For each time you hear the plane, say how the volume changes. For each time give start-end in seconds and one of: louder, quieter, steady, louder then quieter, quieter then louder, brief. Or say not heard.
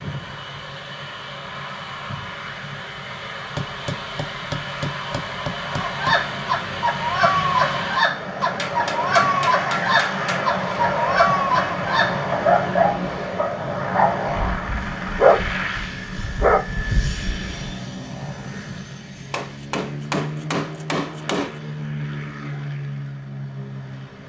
0.0-24.2 louder then quieter.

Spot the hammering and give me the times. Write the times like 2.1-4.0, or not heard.
3.5-6.2, 8.4-10.4, 19.3-21.6.